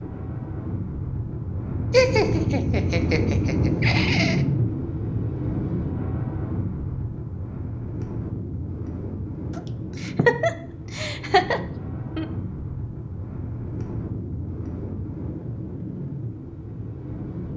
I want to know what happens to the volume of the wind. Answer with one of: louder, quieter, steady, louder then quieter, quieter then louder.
quieter.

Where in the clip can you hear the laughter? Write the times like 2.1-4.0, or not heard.
1.9-4.4, 9.6-12.2.